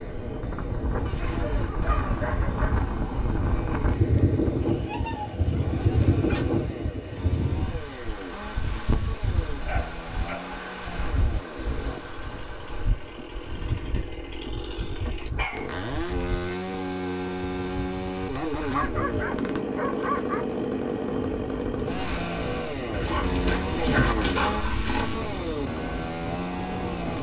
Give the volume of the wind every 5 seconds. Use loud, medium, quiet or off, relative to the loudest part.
loud, loud, medium, medium, medium, medium.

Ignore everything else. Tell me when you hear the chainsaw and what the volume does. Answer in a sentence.
The chainsaw can be heard from 0.0 to 27.1 s, getting louder.